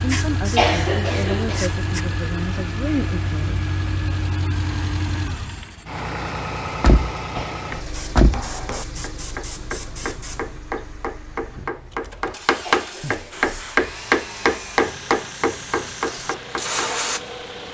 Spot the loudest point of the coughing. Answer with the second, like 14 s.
1 s.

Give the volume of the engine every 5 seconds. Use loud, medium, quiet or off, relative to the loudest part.
loud, loud, medium, medium.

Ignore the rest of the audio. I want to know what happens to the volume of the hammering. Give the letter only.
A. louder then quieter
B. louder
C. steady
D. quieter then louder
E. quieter
A.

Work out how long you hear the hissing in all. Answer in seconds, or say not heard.
9 s.